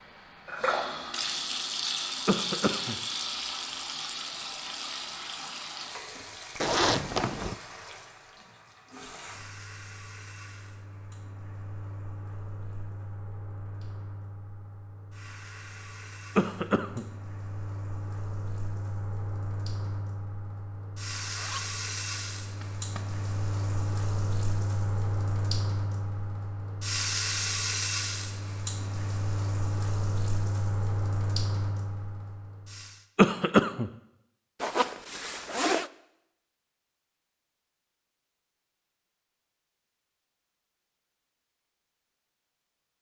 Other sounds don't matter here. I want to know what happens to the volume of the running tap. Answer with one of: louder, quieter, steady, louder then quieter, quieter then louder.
quieter then louder.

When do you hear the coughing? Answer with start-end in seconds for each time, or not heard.
2.2-3.0, 16.4-17.1, 33.1-33.9.